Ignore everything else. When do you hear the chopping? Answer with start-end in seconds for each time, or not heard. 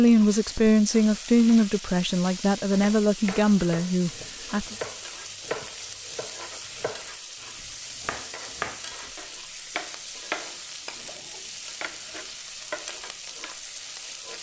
2.8-13.5.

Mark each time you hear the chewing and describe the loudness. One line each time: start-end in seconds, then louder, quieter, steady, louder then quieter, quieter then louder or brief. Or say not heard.
not heard.